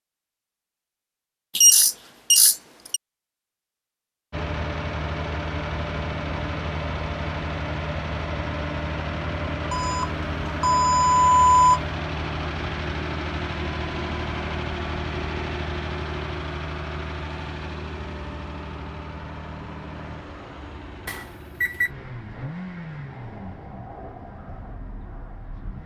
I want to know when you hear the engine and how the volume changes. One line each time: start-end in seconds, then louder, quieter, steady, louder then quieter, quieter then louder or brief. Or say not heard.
4.3-25.8 quieter.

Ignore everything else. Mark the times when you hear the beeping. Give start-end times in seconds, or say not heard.
1.6-3.0, 9.7-11.8, 21.1-21.9.